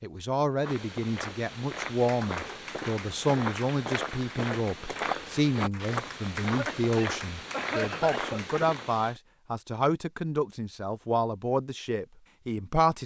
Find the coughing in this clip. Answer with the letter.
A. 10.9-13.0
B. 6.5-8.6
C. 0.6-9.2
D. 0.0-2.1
B.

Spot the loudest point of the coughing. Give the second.
8 s.